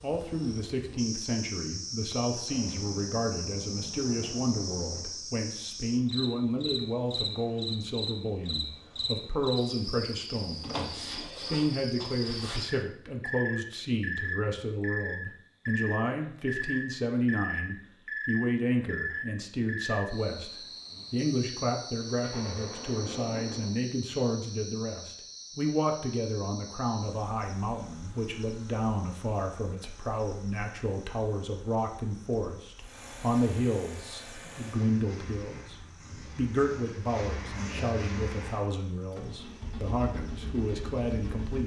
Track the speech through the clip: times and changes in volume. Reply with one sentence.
You can hear the speech from 0.0 to 41.6 s, at a steady volume.